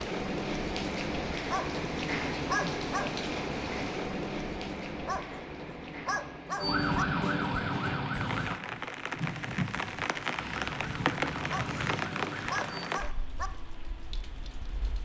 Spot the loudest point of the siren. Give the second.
7 s.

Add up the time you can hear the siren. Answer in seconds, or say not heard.
5 s.